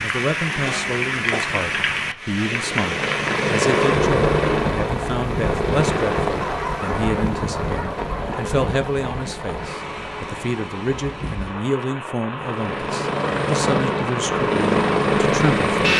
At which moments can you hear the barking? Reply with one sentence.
The barking can be heard from 6.4 to 8.4 s.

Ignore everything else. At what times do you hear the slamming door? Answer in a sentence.
The slamming door can't be heard in this clip.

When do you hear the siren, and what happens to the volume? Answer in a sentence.
You can't hear the siren here.